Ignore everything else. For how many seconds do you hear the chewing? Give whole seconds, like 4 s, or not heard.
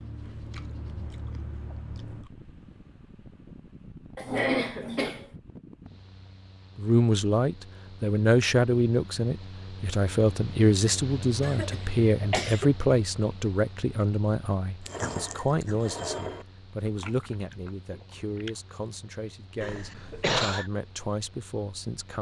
6 s.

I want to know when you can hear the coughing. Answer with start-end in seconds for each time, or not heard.
4.2-5.2, 11.4-12.7, 19.6-20.7.